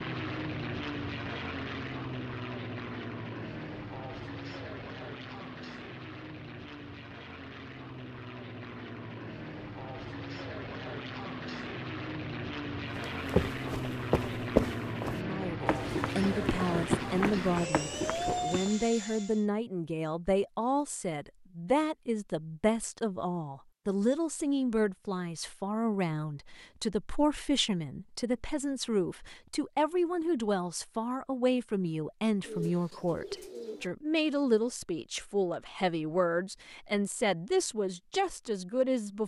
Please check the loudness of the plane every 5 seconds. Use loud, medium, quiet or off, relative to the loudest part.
loud, medium, loud, loud, off, off, off, off.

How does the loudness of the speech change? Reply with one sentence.
The volume of the speech stays about the same.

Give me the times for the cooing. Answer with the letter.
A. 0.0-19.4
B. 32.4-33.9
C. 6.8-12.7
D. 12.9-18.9
B.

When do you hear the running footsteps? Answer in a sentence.
The running footsteps can be heard from 12.9 to 18.9 s.